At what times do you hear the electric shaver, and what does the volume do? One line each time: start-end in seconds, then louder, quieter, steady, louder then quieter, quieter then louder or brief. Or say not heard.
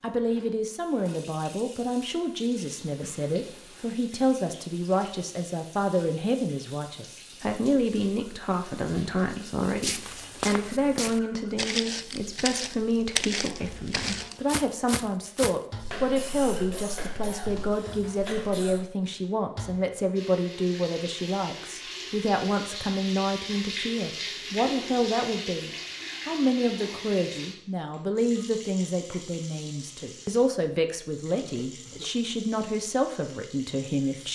not heard.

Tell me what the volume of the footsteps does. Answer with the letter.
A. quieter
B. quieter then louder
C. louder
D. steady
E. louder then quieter
A.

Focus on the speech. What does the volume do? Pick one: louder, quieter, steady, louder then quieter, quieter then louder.
steady.